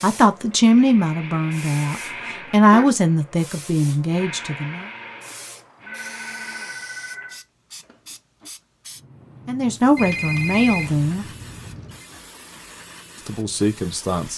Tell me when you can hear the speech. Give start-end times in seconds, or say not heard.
0.0-4.8, 9.4-11.2, 13.2-14.3.